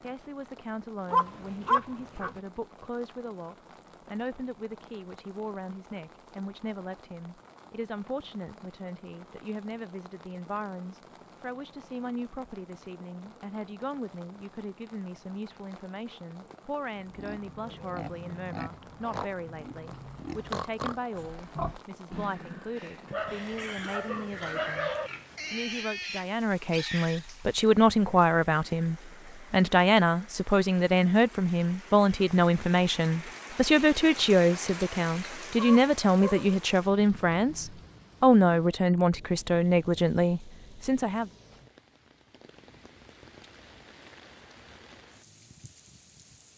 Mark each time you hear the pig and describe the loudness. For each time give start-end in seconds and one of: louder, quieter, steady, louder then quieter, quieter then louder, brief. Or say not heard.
16.9-27.2 steady.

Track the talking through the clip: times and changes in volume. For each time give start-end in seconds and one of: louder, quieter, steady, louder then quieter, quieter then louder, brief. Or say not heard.
0.0-41.3 louder.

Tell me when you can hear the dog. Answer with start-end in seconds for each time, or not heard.
1.1-2.4, 23.1-25.1, 35.5-36.6.